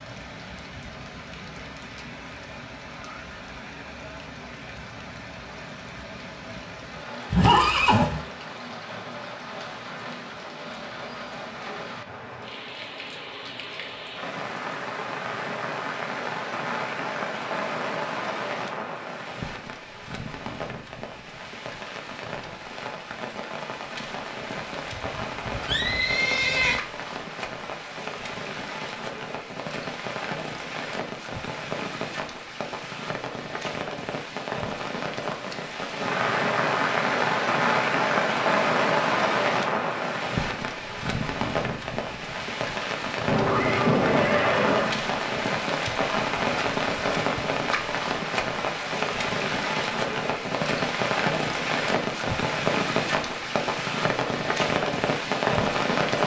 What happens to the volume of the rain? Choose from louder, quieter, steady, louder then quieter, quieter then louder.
louder.